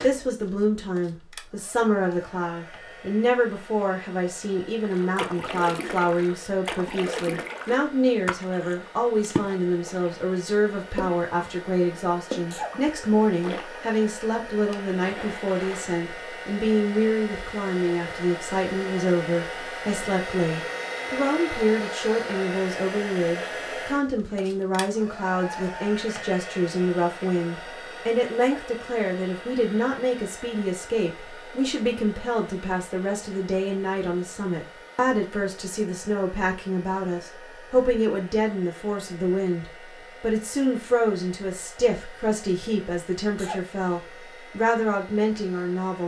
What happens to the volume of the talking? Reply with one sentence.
The loudness of the talking stays about the same.